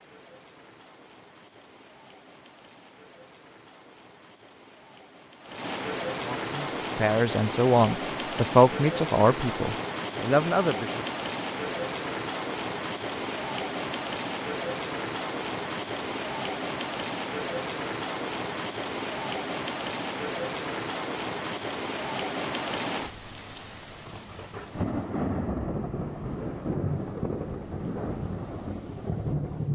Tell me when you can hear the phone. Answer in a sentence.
You can't hear the phone here.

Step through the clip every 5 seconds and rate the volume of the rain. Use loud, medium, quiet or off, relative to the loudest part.
quiet, loud, loud, loud, loud, loud.